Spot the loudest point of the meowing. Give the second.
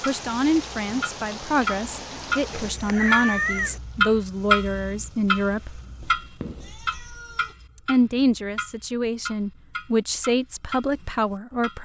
3 s.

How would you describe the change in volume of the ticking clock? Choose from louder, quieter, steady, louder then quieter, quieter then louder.
louder then quieter.